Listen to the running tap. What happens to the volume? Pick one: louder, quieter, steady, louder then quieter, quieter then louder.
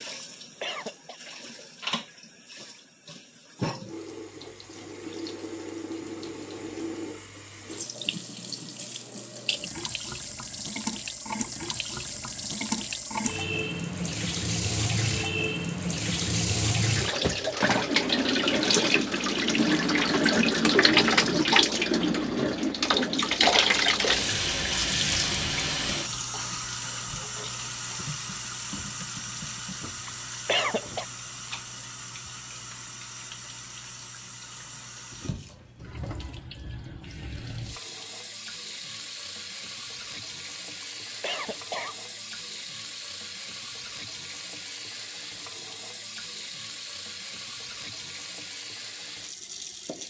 louder then quieter.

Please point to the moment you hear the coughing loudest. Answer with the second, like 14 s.
31 s.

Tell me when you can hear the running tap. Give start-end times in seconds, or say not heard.
0.0-50.0.